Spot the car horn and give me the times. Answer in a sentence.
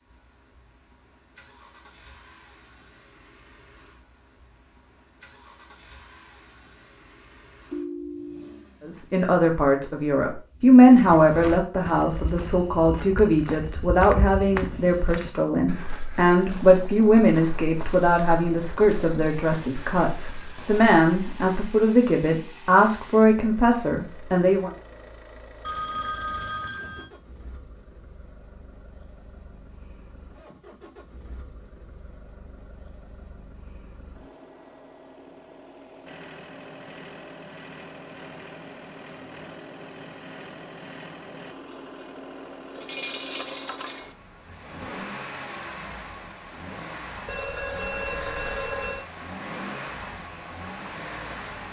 The car horn can't be heard in this clip.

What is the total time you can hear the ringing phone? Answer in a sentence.
You can hear the ringing phone for 4 seconds altogether.